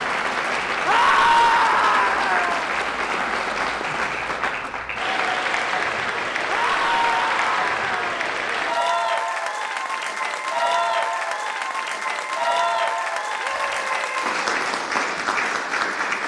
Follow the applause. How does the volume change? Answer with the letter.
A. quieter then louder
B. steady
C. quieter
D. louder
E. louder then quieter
B.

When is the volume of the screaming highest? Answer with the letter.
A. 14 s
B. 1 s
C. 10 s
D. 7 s
B.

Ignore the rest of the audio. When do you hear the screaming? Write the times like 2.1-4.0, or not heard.
0.8-2.6, 6.5-8.2, 13.4-14.3.